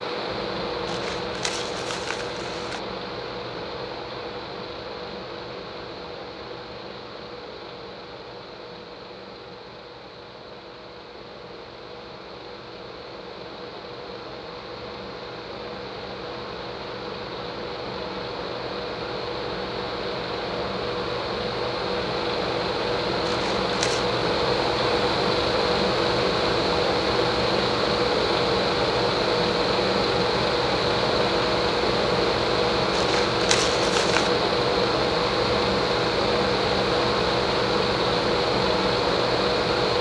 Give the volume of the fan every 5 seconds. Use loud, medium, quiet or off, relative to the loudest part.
medium, quiet, quiet, medium, loud, loud, loud, loud.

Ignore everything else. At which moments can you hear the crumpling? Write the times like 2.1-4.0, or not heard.
0.8-2.8, 23.2-24.1, 32.9-34.4.